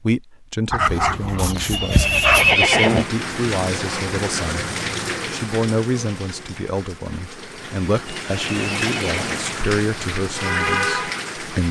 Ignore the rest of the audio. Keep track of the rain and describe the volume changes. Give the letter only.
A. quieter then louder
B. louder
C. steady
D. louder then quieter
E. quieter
A.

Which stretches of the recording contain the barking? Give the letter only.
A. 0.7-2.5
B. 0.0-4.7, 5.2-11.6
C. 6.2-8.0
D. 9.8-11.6
A.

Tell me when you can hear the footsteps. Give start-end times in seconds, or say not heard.
not heard.